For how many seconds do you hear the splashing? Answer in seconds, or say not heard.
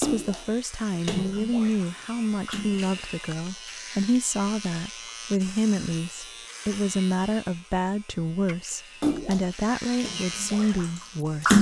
6 s.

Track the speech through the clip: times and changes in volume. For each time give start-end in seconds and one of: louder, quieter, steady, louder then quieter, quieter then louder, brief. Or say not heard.
0.0-11.5 steady.